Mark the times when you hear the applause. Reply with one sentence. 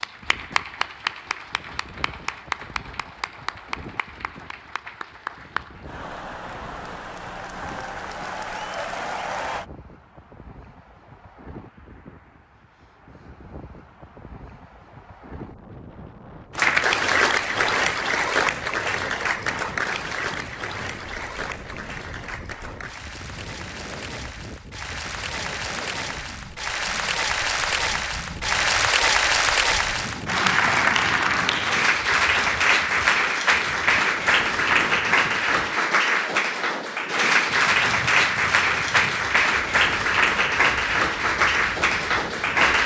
The applause can be heard from 0.0 to 9.7 s and from 16.6 to 42.8 s.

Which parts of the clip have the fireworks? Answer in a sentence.
You can't hear the fireworks here.